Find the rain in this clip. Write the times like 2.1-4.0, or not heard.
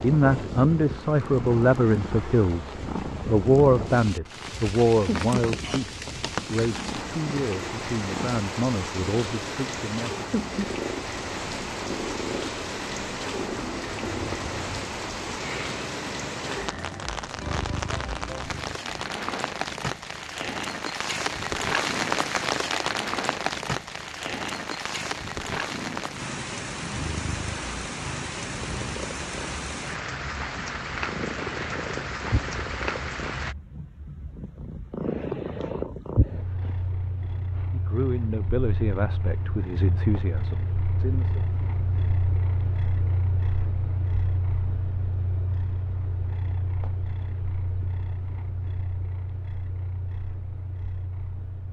0.0-33.5.